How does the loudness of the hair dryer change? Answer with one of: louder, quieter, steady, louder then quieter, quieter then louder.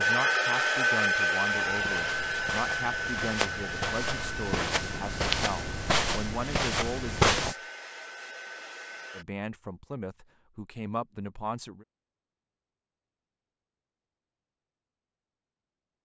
quieter.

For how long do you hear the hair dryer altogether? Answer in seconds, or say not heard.
9 s.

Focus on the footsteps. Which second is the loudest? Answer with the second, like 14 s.
7 s.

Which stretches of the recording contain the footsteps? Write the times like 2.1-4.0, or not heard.
1.6-7.5.